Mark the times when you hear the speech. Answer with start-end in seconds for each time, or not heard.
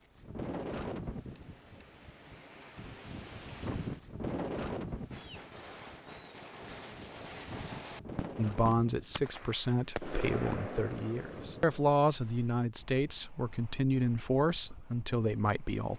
8.3-15.9.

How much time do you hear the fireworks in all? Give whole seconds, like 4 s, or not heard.
7 s.